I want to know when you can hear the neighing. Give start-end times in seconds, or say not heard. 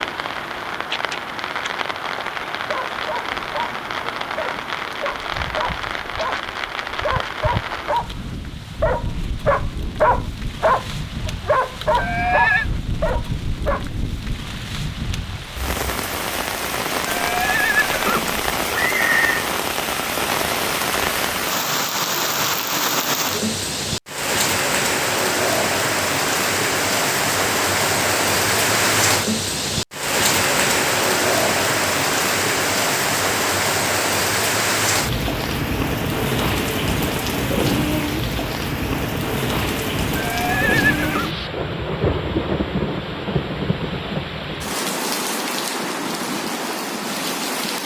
11.9-12.7, 17.1-19.4, 40.1-41.3.